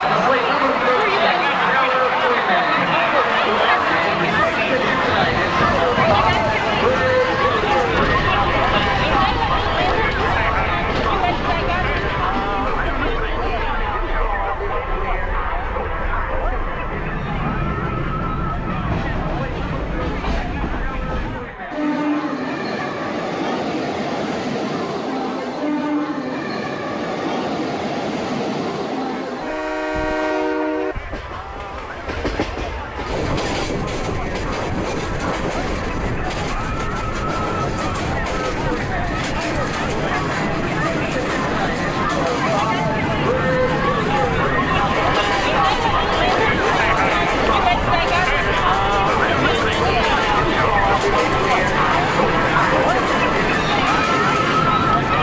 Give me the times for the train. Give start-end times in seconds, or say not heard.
0.0-55.1.